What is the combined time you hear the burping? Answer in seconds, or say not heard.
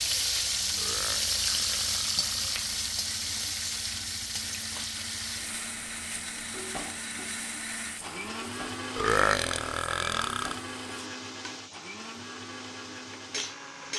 4 s.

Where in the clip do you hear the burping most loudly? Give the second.
9 s.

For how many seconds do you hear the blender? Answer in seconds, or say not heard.
14 s.